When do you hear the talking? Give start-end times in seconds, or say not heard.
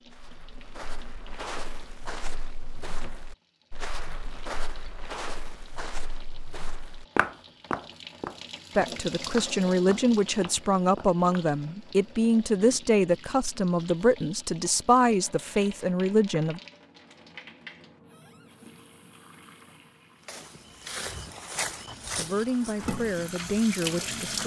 8.8-16.6, 22.1-24.4.